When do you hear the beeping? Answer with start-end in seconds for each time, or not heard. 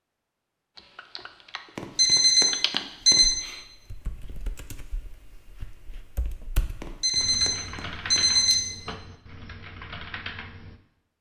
1.8-3.4, 6.8-8.6.